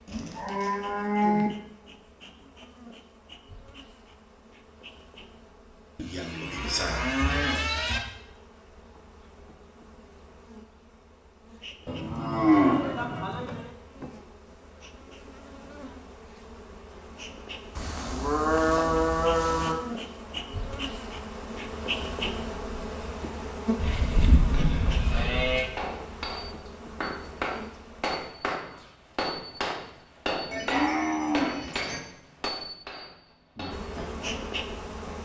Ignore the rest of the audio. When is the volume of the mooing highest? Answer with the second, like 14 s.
13 s.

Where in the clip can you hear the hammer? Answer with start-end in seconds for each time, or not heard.
25.1-34.5.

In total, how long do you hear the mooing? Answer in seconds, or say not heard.
11 s.